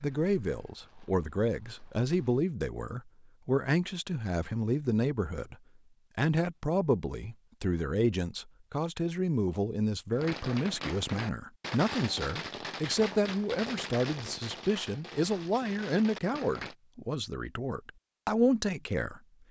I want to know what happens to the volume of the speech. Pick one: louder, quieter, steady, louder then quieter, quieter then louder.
steady.